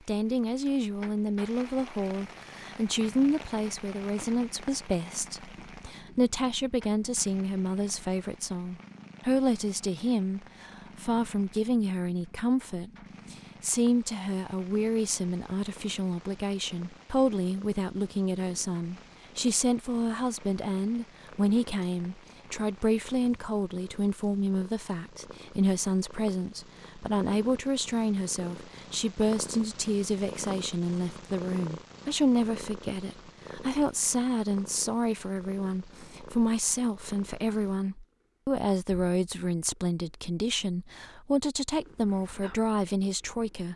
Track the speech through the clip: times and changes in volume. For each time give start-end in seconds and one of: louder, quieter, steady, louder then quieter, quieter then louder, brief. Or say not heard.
0.1-43.7 steady.